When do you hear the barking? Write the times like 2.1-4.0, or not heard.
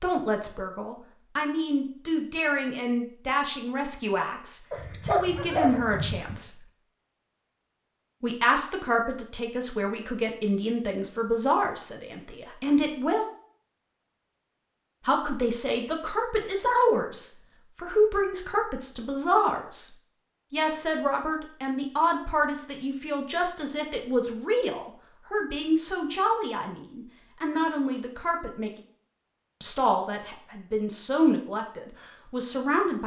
4.7-6.3.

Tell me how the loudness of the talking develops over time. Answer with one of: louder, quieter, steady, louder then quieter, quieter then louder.
steady.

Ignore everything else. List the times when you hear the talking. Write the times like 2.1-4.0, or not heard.
0.0-6.6, 8.2-13.2, 15.1-28.7, 29.6-33.0.